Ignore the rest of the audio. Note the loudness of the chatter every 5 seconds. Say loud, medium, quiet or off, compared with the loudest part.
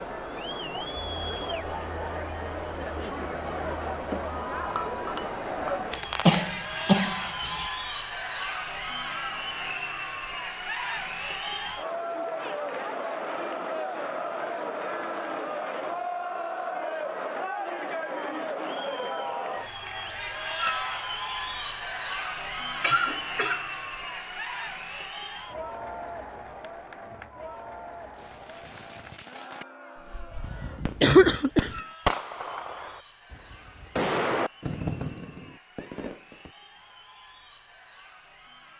loud, loud, loud, loud, loud, medium, quiet, quiet.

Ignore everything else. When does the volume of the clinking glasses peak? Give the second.
21 s.